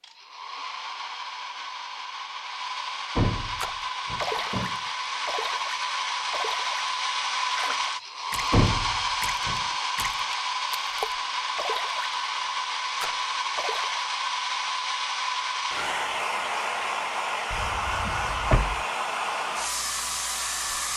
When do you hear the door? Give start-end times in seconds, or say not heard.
3.1-4.8, 8.5-9.7, 17.5-18.8.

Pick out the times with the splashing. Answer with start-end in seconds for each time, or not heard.
3.6-14.1.